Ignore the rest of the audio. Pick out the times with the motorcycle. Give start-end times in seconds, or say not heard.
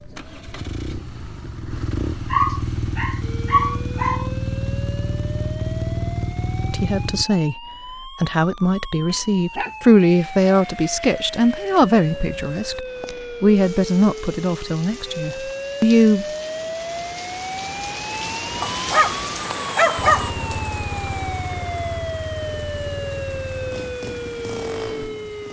0.0-7.2, 19.9-25.4.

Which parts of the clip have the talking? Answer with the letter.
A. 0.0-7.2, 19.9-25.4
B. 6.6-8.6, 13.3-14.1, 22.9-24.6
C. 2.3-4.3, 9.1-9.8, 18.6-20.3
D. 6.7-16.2
D.